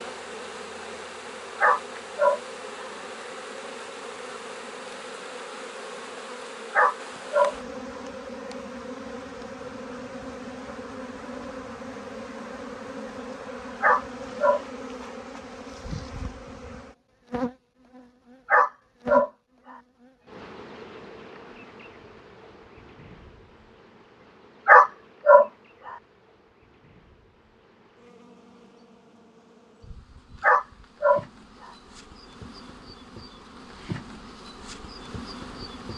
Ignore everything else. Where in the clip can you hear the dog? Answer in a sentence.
You can hear the dog from 1.6 to 2.4 s, from 6.7 to 7.5 s, from 13.8 to 14.6 s, from 18.5 to 19.3 s, from 24.6 to 25.4 s and from 30.4 to 31.2 s.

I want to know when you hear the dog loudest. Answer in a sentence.
The loudest moment of the dog is at 25 seconds.